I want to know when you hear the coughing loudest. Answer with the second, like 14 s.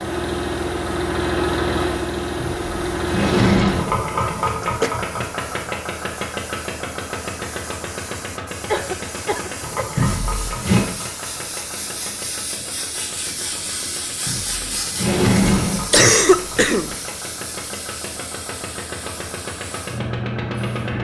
16 s.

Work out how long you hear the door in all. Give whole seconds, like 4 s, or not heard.
4 s.